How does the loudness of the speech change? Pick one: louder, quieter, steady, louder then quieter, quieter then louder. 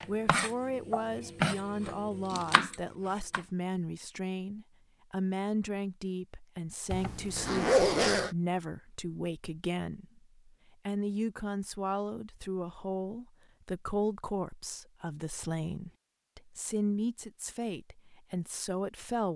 steady.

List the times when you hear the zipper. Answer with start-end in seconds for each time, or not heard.
6.9-8.3.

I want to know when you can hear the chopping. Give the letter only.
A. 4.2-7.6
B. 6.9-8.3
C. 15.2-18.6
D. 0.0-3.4
D.